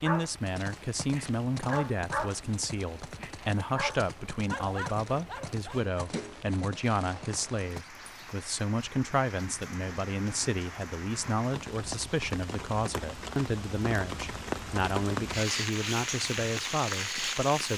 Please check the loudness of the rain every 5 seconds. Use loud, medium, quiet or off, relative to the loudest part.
quiet, quiet, medium, loud.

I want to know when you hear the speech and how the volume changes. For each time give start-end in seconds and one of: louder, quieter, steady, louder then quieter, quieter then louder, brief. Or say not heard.
0.0-17.7 steady.